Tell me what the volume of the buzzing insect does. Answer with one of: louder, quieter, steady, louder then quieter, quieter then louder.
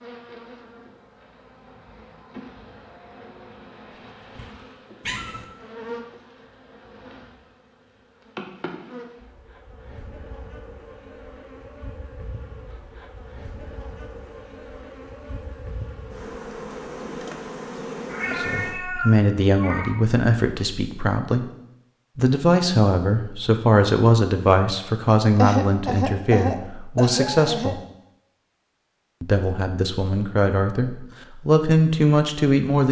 louder.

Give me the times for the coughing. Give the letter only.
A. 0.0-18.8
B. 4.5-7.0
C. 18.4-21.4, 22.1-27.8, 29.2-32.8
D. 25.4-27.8
D.